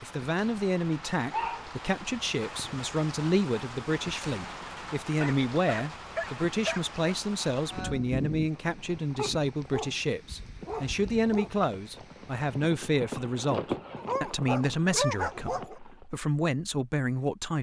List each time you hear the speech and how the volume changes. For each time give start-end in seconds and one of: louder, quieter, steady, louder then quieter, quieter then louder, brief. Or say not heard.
0.0-17.5 steady.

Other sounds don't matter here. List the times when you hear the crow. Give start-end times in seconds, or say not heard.
not heard.